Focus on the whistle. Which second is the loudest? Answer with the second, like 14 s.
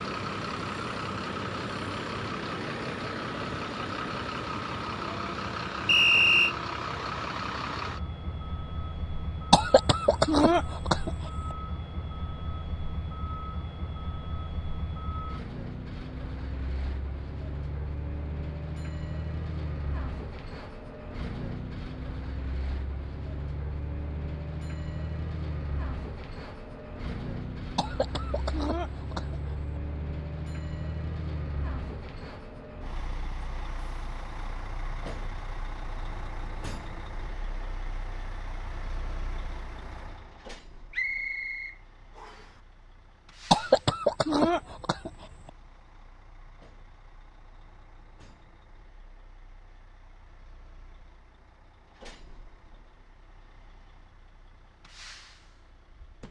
6 s.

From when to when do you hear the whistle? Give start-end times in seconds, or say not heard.
5.8-6.5, 40.9-42.5.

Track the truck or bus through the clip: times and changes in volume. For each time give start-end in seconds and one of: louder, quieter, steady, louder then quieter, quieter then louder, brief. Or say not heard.
0.0-56.2 quieter.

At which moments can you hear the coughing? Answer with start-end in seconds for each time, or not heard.
9.5-11.1, 27.8-29.4, 43.5-45.2.